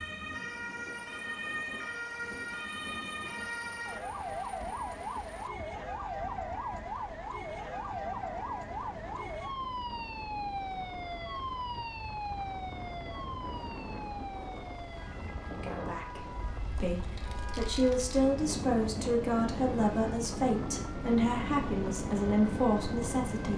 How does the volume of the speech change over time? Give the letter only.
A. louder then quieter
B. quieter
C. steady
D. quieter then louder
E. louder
E.